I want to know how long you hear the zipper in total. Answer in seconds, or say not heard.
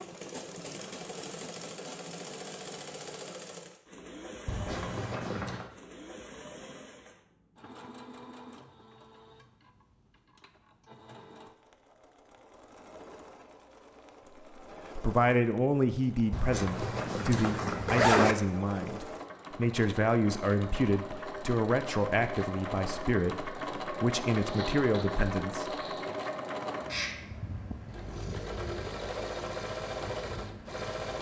5 s.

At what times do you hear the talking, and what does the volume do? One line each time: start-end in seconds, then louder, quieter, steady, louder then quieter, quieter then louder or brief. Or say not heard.
14.9-26.1 steady.